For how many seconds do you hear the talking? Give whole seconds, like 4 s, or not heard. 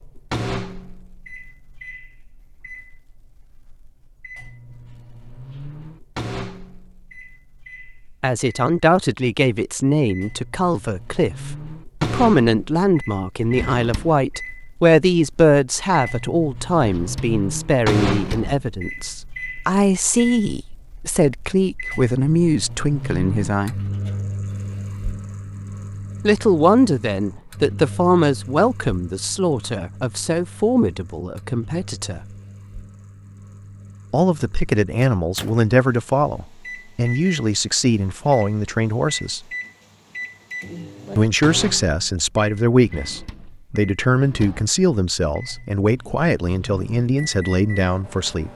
34 s.